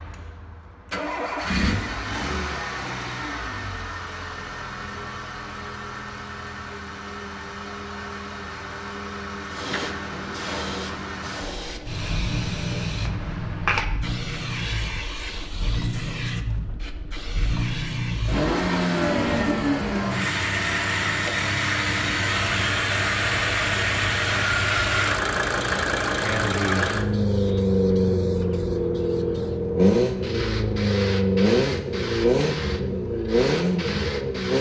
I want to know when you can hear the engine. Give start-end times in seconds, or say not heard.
0.0-34.5.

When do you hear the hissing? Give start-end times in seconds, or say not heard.
9.5-34.5.